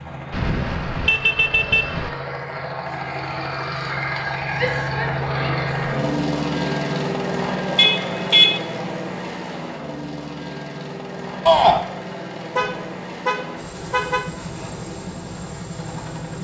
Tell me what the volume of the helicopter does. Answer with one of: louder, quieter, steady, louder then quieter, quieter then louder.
louder then quieter.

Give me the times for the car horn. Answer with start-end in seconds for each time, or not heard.
0.3-2.1, 7.8-8.6, 12.6-14.3.